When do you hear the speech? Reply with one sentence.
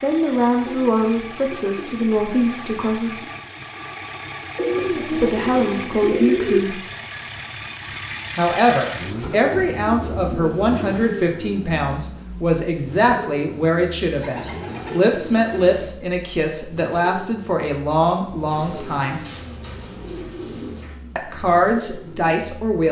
The speech can be heard from 0.0 to 3.2 s, from 5.1 to 6.8 s, from 8.3 to 19.2 s and from 21.1 to 22.8 s.